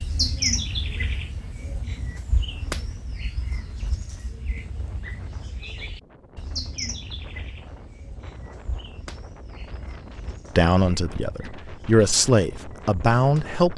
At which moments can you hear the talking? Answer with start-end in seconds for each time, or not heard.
10.6-13.7.